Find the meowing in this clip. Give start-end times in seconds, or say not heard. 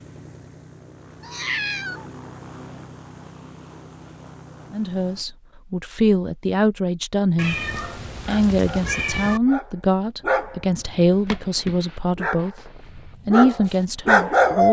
1.2-2.0, 7.3-9.4.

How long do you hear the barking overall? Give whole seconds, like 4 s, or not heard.
6 s.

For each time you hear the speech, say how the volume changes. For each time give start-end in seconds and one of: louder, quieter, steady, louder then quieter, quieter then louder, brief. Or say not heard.
4.7-14.6 steady.